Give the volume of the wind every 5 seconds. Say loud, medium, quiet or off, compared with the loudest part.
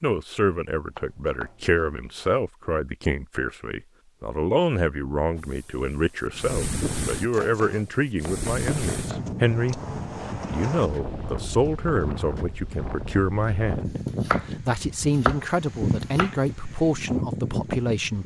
off, loud, loud, loud.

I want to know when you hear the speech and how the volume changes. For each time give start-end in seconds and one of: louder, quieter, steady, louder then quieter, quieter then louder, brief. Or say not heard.
0.0-18.2 steady.